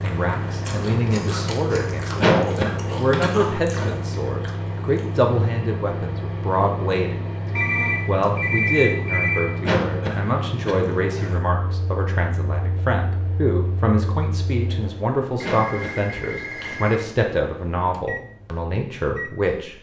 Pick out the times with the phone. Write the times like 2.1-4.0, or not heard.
1.1-1.8, 7.5-9.4, 15.4-17.1.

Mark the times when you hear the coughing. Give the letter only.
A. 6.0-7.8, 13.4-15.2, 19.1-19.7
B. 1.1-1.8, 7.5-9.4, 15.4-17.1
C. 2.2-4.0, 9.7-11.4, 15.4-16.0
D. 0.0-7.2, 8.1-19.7
C.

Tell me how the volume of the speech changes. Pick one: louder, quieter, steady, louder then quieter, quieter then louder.
steady.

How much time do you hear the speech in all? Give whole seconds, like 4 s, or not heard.
19 s.